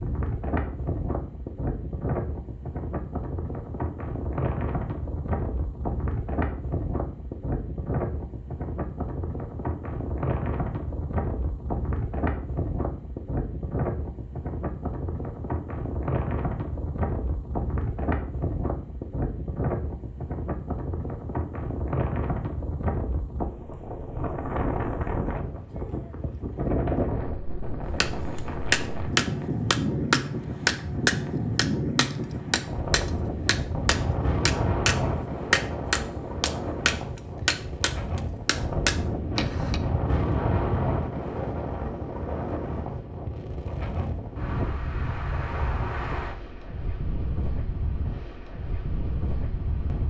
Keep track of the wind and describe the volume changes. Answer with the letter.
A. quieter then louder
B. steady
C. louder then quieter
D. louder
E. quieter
B.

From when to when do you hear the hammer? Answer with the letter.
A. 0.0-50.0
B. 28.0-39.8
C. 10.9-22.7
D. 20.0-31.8
B.